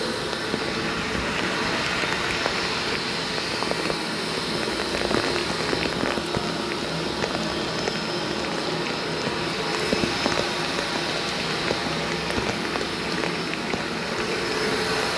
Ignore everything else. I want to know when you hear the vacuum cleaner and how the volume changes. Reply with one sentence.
The vacuum cleaner can be heard from 0.0 to 15.1 s, at a steady volume.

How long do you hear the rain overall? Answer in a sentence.
You can hear the rain for 15 seconds altogether.